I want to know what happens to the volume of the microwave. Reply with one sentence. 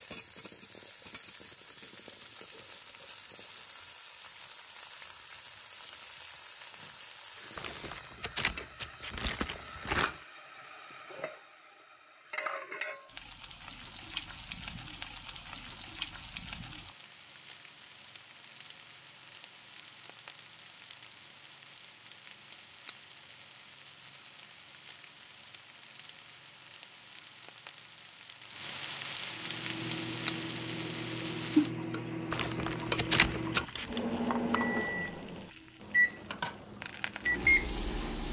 The volume of the microwave goes up.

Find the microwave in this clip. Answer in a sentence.
The microwave can be heard from 29.3 to 38.2 s.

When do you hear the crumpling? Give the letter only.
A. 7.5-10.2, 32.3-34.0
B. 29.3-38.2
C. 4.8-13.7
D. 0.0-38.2
A.